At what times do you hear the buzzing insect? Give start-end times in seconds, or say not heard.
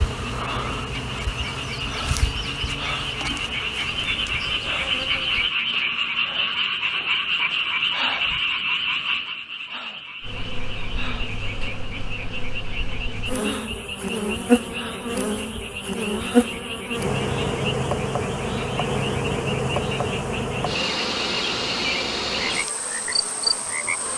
0.0-5.5, 10.2-24.1.